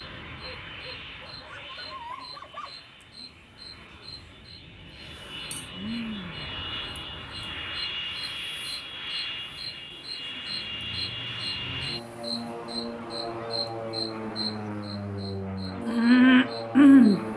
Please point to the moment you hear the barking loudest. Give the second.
2 s.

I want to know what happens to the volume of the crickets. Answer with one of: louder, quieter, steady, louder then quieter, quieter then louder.
louder.